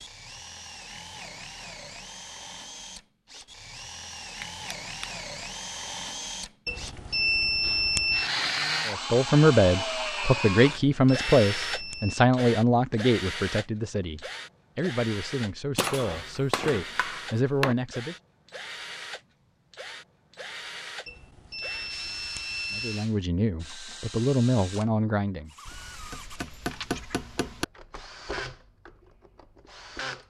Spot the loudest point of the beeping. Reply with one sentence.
The volume of the beeping peaks at 7 seconds.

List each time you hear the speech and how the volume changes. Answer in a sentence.
The speech can be heard from 8.8 to 18.1 s, getting quieter; and briefly from 22.7 to 25.5 s.